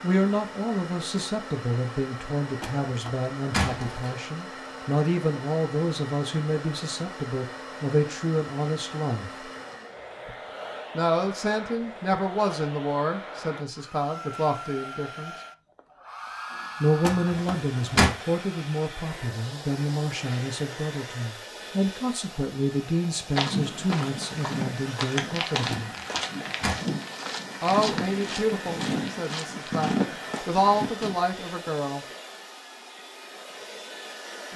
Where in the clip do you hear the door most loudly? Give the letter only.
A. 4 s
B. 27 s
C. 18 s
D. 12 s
C.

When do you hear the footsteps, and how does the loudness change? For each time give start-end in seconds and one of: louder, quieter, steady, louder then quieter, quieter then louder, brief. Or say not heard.
23.2-31.1 steady.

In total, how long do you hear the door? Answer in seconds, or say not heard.
4 s.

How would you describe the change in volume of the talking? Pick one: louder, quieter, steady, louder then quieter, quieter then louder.
steady.